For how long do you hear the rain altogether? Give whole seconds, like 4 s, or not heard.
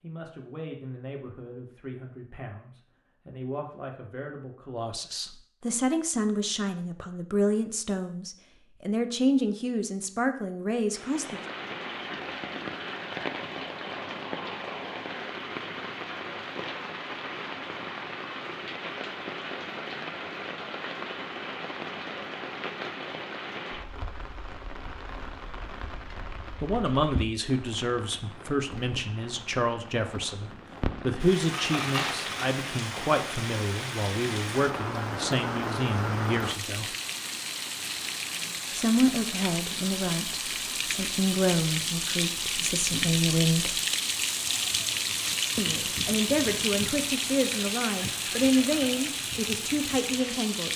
40 s.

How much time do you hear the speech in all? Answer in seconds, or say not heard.
32 s.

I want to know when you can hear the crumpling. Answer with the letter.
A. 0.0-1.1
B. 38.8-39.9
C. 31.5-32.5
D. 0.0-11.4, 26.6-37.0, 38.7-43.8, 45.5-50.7
C.